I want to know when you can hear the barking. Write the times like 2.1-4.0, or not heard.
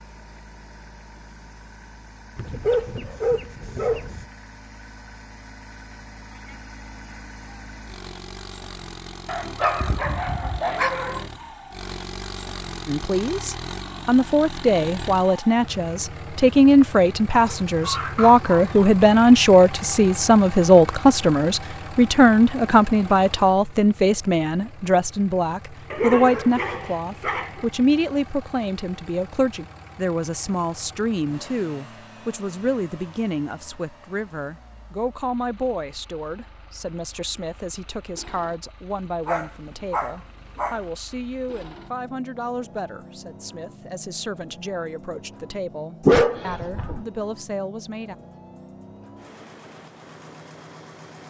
2.4-4.2, 9.2-11.3, 17.3-18.9, 25.9-27.6, 39.2-40.8, 46.0-47.0.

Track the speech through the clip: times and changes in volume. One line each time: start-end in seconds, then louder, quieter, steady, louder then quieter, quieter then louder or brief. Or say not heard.
12.8-48.1 quieter.